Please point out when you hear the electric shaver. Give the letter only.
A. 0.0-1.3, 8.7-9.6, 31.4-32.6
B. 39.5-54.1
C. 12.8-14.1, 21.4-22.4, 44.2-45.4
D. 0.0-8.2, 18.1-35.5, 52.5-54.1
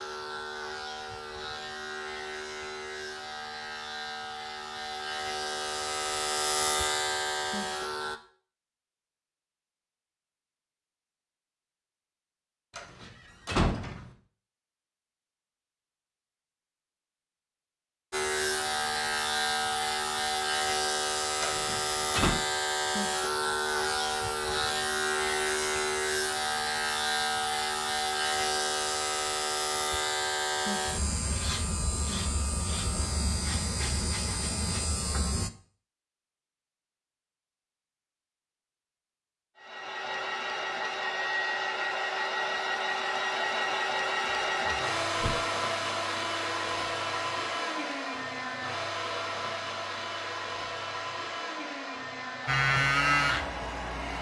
D.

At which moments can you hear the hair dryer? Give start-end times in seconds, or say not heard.
39.5-54.1.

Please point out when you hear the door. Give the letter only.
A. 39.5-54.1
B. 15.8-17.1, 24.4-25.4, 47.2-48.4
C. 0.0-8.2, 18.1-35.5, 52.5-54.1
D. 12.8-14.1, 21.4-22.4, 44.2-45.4
D.